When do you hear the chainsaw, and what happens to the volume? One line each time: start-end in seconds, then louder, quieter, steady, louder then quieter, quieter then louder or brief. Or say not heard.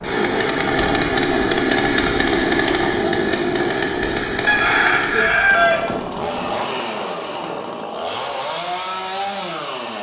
0.0-9.9 quieter.